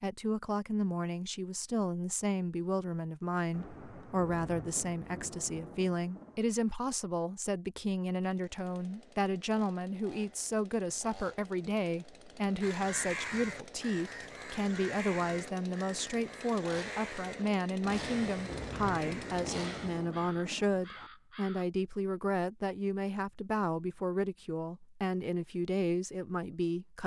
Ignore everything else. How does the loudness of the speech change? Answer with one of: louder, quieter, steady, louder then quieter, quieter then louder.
steady.